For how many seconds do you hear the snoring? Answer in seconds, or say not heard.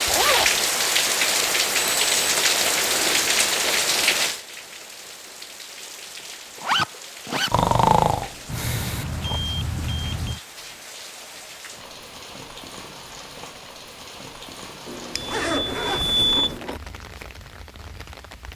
2 s.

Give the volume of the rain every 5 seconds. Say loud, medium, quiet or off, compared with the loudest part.
loud, quiet, quiet, quiet.